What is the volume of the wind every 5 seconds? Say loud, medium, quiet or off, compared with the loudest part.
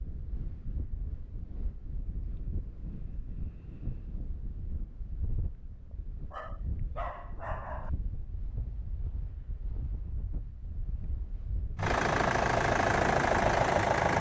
medium, medium, loud.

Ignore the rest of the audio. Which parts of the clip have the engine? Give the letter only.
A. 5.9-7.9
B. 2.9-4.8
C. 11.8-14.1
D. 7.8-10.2
C.